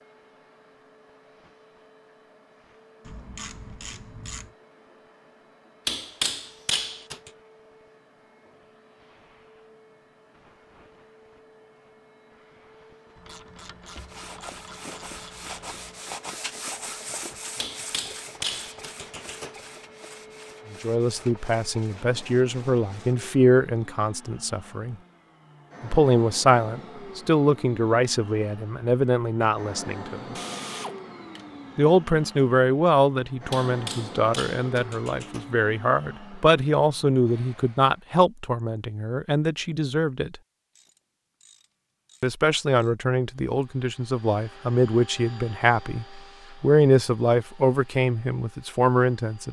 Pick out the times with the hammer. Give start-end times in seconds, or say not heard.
5.8-7.3, 17.6-19.6, 33.5-35.5.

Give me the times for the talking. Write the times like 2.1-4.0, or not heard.
20.7-24.9, 25.8-30.4, 31.8-40.4, 42.2-49.4.